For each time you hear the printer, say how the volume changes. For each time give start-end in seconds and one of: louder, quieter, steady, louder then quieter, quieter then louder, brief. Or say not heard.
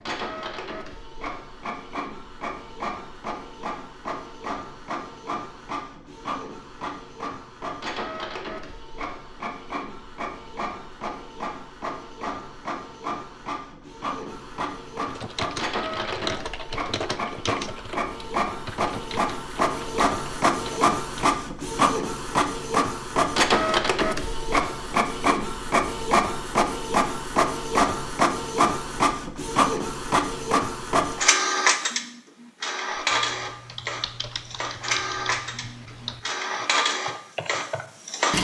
0.0-38.3 louder.